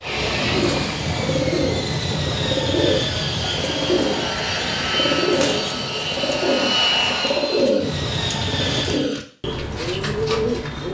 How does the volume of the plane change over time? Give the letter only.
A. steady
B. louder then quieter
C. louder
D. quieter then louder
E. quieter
A.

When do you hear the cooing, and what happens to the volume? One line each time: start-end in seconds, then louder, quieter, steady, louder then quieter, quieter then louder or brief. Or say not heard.
0.5-10.9 steady.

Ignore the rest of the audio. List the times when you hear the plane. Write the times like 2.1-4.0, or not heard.
0.0-9.1.